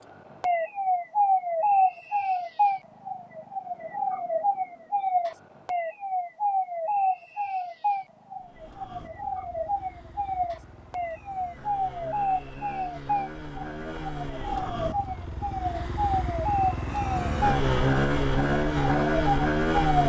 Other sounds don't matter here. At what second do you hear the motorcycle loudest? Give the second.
18 s.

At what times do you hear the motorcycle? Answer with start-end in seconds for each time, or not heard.
8.3-20.0.